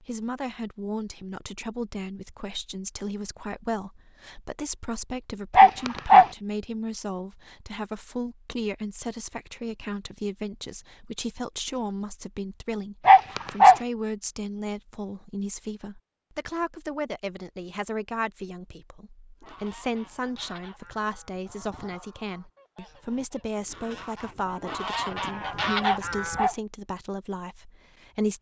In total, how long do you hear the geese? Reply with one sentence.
The geese can be heard for 7 seconds in total.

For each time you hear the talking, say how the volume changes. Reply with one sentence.
You can hear the talking from 0.0 to 28.3 s, at a steady volume.